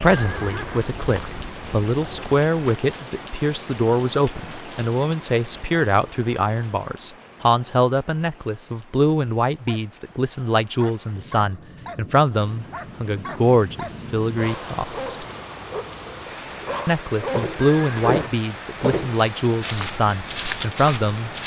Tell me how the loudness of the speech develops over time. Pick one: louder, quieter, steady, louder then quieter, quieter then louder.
steady.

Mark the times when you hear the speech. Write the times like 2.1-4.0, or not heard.
0.0-15.2, 16.9-21.3.